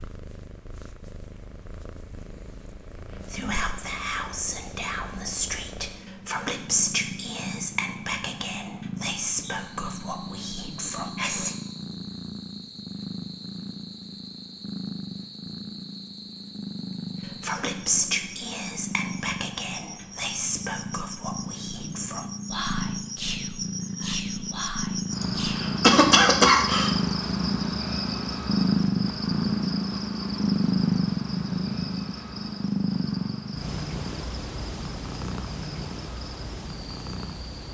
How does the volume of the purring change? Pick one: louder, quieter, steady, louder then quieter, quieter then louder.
louder.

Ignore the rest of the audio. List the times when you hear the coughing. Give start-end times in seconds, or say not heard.
25.2-26.9.